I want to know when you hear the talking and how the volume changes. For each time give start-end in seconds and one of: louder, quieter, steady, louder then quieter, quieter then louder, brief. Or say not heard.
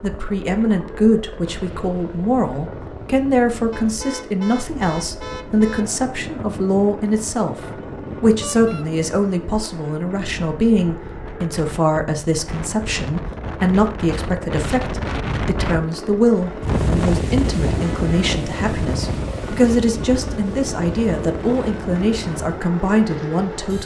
0.0-23.8 steady.